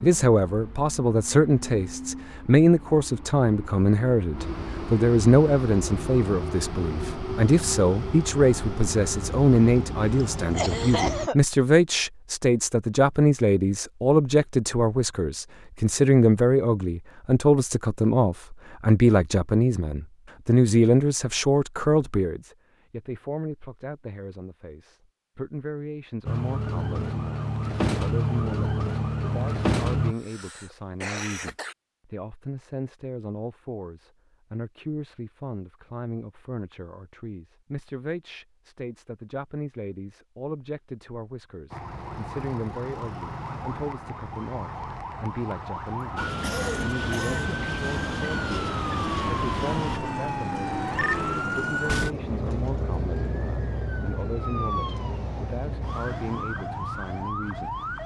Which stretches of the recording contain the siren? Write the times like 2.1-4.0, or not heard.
26.2-30.1, 41.7-58.0.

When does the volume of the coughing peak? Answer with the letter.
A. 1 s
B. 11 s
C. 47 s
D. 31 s
B.